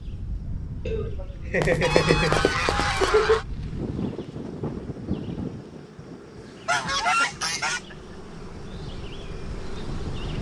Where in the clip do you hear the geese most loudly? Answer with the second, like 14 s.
7 s.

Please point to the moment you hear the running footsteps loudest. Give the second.
2 s.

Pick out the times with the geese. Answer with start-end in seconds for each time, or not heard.
1.8-3.5, 6.3-7.8.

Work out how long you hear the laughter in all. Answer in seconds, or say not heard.
4 s.